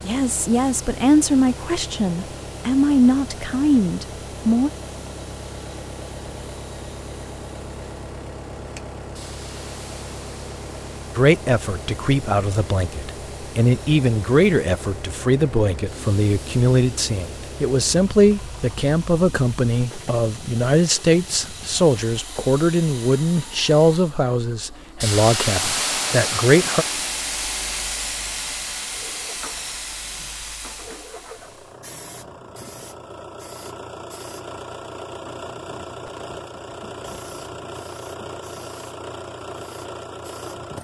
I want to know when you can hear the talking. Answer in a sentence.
The talking can be heard from 0.1 to 4.7 s and from 11.2 to 26.9 s.